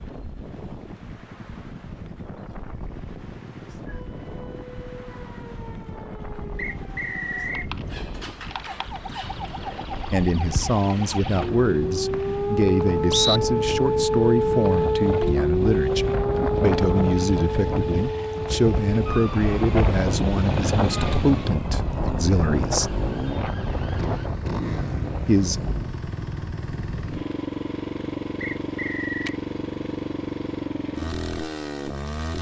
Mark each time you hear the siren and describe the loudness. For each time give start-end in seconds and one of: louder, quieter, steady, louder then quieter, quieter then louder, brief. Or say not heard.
3.9-24.3 louder then quieter.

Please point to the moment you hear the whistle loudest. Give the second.
13 s.